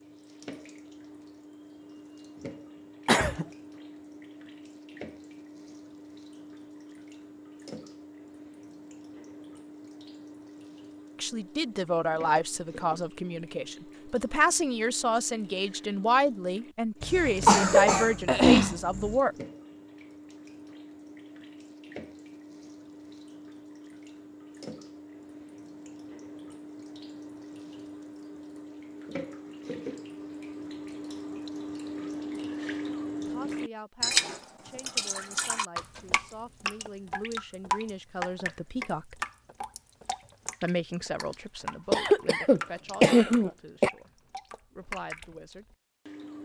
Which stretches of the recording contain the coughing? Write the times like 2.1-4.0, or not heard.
3.0-3.5, 17.0-19.1, 41.9-43.9.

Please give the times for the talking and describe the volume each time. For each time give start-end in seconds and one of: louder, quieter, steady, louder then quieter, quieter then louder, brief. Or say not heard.
11.2-19.4 steady
33.2-39.1 louder
40.6-45.6 quieter then louder.